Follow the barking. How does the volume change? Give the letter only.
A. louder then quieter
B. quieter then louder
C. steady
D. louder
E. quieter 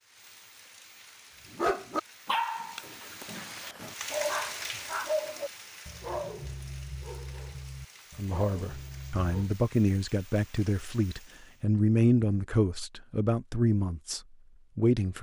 E.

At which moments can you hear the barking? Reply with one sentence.
You can hear the barking from 1.5 to 9.5 s.